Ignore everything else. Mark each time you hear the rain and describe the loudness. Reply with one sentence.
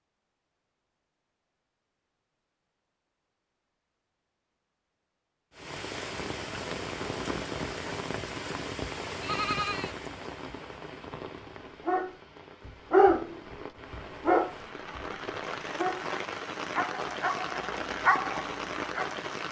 You can hear the rain from 5.5 to 19.4 s, getting quieter then louder.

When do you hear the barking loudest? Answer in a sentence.
The volume of the barking peaks at 13 seconds.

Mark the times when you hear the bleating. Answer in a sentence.
The bleating can be heard from 9.2 to 9.9 s.